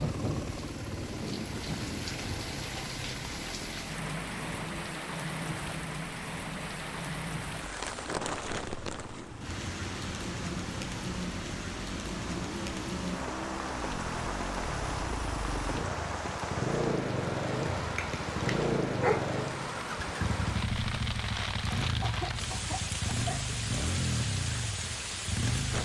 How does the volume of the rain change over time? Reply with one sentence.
The loudness of the rain stays about the same.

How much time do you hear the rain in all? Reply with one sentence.
You can hear the rain for 26 seconds altogether.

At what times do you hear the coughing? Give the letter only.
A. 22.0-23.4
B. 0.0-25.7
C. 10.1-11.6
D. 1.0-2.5
A.